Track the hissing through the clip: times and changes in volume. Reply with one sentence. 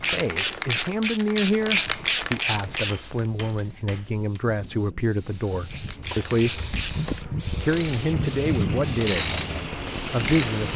The hissing can be heard from 0.0 to 10.7 s, getting louder.